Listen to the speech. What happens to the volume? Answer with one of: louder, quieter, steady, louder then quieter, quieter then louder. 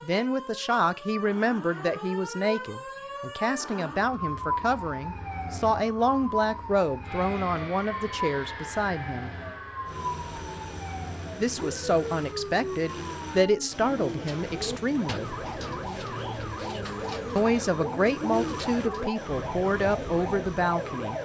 steady.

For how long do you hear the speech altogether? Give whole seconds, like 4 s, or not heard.
17 s.